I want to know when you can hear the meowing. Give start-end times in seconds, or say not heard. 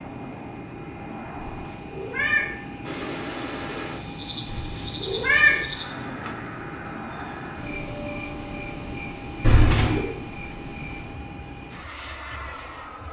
1.5-2.5, 4.5-5.7, 9.4-10.1.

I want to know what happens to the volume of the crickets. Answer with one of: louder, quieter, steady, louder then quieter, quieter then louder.
quieter.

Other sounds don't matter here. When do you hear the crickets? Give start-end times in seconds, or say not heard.
2.8-13.0.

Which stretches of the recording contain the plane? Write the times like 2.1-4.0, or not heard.
0.0-13.0.